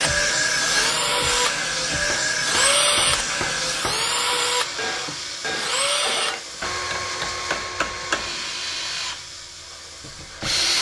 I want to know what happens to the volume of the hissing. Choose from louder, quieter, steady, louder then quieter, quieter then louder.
quieter.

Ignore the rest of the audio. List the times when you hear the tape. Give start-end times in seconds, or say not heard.
not heard.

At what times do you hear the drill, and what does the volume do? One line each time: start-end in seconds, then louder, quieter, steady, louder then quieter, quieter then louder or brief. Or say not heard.
0.0-10.7 quieter.